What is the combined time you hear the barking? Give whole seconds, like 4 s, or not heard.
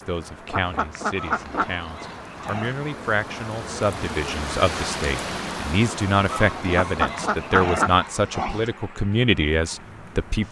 4 s.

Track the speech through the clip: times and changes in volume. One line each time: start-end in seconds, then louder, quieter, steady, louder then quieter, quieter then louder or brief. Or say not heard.
0.1-10.4 louder.